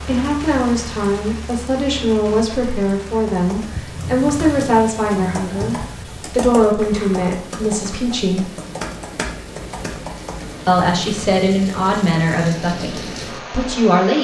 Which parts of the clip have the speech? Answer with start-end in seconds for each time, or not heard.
0.0-8.4, 10.7-14.1.